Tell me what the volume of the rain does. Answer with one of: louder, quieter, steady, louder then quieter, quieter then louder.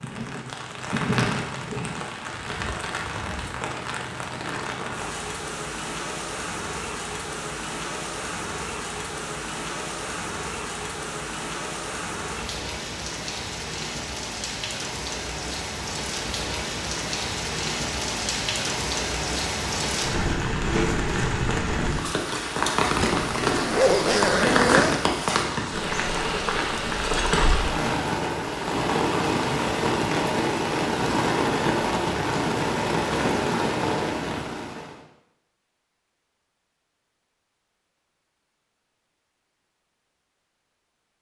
louder.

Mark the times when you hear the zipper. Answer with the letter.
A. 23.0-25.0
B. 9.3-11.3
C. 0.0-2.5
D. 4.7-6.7
A.